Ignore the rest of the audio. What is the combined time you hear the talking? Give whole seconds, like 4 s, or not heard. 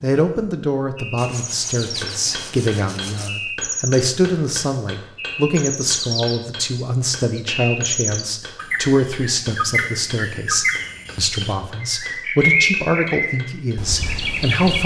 15 s.